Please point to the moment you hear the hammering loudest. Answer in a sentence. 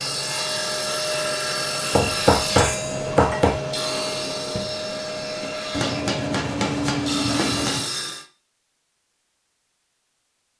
The volume of the hammering peaks at 2 seconds.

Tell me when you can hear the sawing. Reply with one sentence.
You can hear the sawing from 0.0 to 8.2 s.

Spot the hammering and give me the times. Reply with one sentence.
The hammering can be heard from 1.9 to 3.6 s and from 5.7 to 7.9 s.